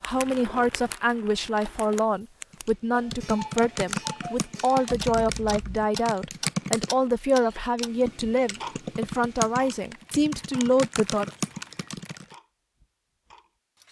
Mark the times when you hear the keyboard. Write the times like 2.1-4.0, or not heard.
2.5-12.3.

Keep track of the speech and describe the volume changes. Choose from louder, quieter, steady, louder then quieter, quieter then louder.
steady.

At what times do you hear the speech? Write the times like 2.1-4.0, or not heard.
0.0-11.3.